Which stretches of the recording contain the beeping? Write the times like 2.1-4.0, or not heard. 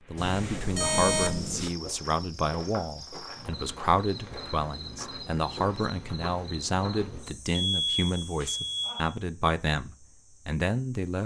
0.1-1.7, 7.6-9.2.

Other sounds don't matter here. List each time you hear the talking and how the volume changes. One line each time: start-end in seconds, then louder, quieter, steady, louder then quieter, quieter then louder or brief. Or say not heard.
0.1-11.2 steady.